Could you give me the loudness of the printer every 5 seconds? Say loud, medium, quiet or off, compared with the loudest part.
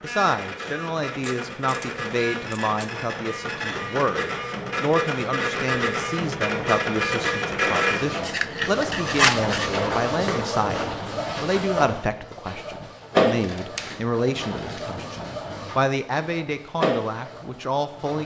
medium, loud, loud, medium.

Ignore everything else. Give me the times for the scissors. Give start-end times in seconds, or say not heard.
1.2-3.0, 8.2-9.8, 13.4-14.9.